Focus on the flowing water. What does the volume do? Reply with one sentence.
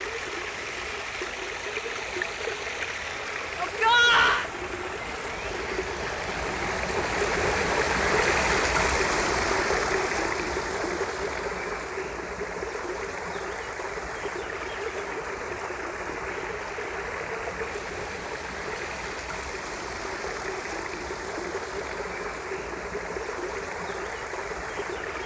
The loudness of the flowing water goes up, then down.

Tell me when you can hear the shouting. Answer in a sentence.
The shouting can be heard from 3.5 to 4.5 s.